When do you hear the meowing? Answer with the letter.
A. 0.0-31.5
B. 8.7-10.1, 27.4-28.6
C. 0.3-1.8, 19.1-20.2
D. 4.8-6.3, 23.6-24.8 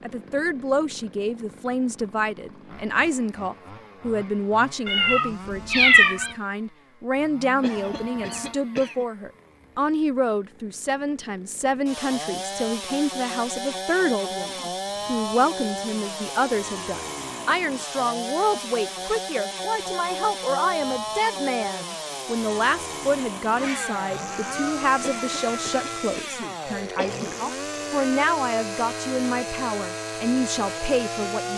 D.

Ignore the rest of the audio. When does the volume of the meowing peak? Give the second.
6 s.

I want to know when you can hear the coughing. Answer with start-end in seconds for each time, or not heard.
7.6-9.1, 25.0-27.4.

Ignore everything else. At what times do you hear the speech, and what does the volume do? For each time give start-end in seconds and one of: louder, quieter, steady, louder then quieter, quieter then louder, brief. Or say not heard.
0.0-31.5 steady.